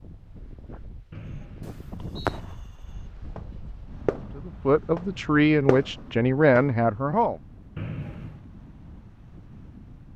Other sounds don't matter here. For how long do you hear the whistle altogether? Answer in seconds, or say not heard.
2 s.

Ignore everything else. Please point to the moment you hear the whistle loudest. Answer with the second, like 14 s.
8 s.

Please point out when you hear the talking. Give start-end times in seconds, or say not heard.
4.3-7.4.